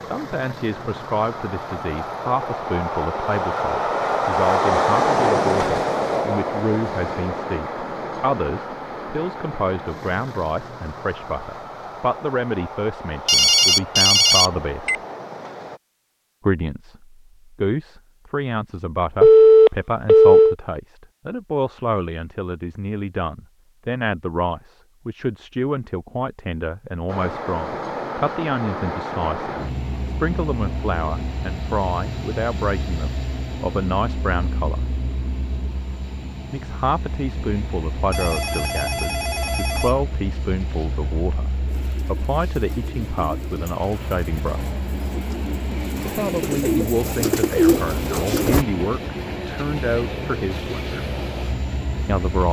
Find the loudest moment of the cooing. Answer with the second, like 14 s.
48 s.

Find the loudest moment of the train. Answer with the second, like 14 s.
5 s.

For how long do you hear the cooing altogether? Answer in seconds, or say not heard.
7 s.